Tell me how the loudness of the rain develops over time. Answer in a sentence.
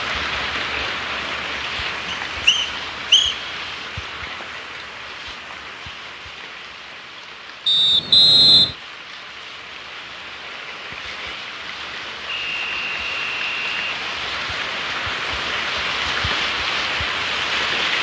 The volume of the rain goes down, then up.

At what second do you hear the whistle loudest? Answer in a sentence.
The loudest moment of the whistle is at 8 seconds.